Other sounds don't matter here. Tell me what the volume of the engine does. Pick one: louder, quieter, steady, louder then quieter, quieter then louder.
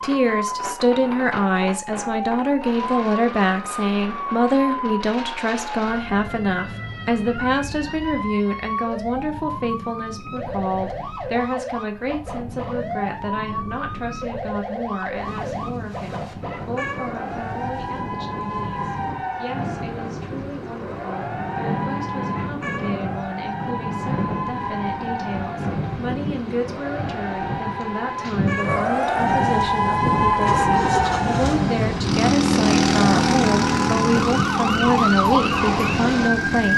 louder then quieter.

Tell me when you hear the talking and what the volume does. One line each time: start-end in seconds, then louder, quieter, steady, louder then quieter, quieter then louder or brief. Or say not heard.
0.0-36.7 quieter then louder.